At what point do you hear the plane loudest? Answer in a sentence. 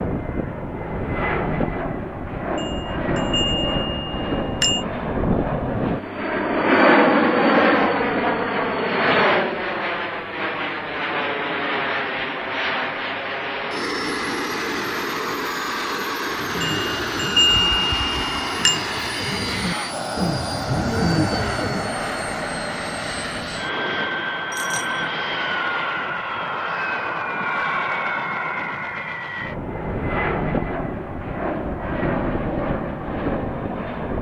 The volume of the plane peaks at 7 seconds.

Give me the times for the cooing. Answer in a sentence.
You can hear the cooing from 16.2 to 21.9 s.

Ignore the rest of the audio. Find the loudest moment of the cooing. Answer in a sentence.
The loudest moment of the cooing is at 21 seconds.